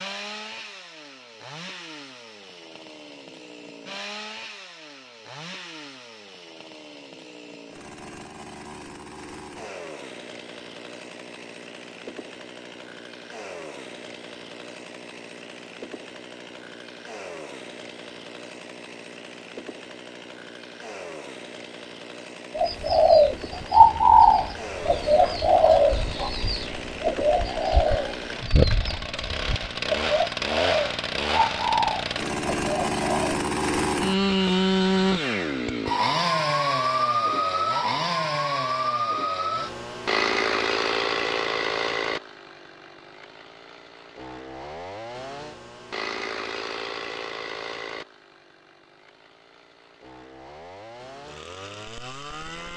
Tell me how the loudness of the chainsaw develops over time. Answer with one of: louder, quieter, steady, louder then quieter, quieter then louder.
louder then quieter.